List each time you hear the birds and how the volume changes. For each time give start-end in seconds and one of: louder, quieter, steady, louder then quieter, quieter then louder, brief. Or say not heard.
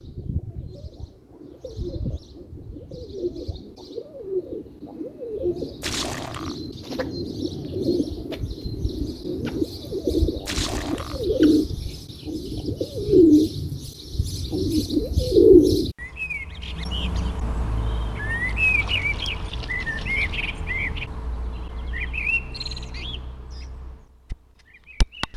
0.0-25.3 louder then quieter.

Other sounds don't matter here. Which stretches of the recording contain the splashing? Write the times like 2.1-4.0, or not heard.
5.8-6.5, 10.4-11.2, 18.4-20.4.